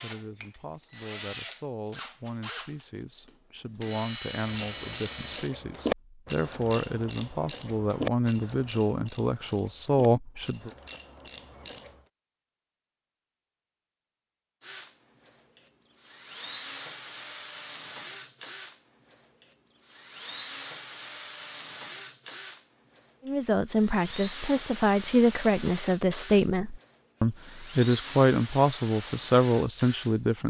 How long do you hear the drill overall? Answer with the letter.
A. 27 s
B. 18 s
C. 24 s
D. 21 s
D.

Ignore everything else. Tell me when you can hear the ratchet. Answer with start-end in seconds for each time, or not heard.
4.3-11.9.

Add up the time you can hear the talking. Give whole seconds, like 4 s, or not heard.
18 s.